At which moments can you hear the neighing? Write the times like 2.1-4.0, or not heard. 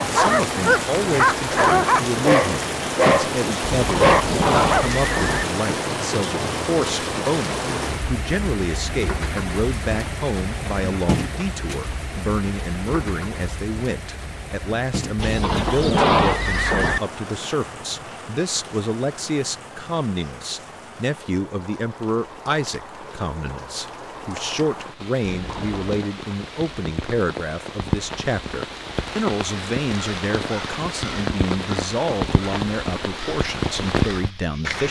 3.6-5.5, 15.2-17.0, 25.2-26.1.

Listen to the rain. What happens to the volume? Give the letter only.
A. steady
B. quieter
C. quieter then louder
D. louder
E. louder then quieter
C.